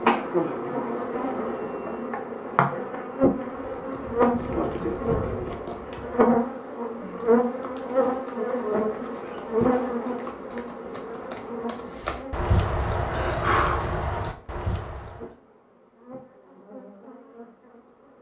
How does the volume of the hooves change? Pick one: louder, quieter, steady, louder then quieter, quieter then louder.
quieter then louder.